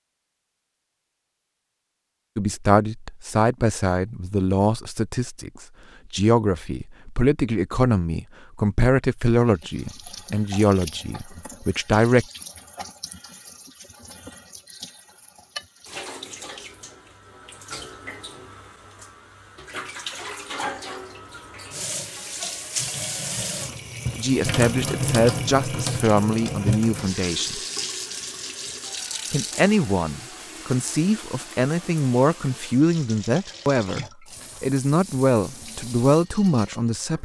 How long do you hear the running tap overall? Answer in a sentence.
You can hear the running tap for 28 seconds altogether.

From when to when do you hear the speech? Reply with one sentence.
You can hear the speech from 2.4 to 12.2 s, from 24.1 to 27.6 s and from 29.3 to 37.2 s.